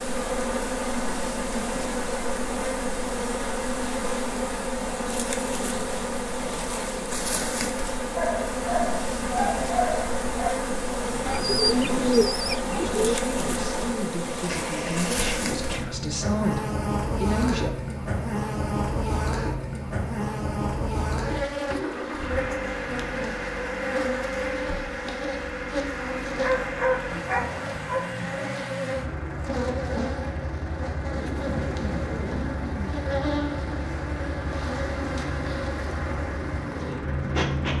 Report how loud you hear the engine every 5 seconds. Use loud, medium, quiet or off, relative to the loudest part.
medium, medium, medium, loud, loud, loud, loud, loud.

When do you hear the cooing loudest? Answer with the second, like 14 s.
12 s.